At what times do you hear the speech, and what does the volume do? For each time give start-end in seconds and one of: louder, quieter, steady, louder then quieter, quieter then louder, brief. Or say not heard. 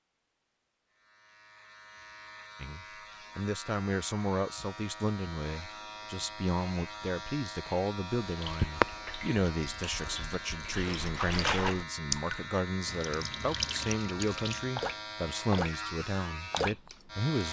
2.6-17.4 steady.